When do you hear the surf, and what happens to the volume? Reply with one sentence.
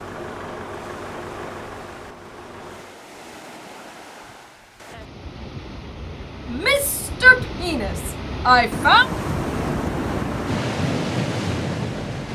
The surf can be heard from 0.0 to 12.3 s, getting louder.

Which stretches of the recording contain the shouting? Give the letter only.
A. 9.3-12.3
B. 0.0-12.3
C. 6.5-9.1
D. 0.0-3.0
C.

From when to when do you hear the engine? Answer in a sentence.
The engine can be heard from 0.0 to 3.0 s.